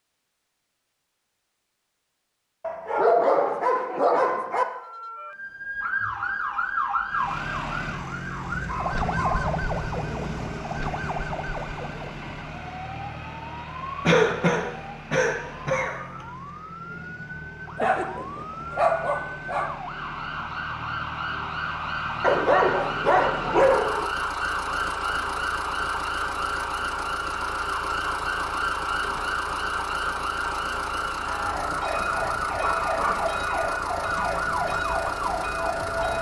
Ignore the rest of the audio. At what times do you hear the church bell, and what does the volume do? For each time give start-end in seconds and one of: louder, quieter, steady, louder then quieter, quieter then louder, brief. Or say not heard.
31.1-36.1 steady.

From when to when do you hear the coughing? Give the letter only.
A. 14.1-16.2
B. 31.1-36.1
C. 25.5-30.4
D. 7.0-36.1
A.